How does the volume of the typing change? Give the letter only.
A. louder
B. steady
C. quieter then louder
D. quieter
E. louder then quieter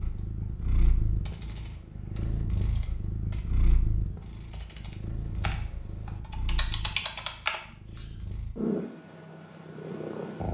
A.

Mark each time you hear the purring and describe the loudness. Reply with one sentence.
The purring can be heard from 0.0 to 10.5 s, getting quieter then louder.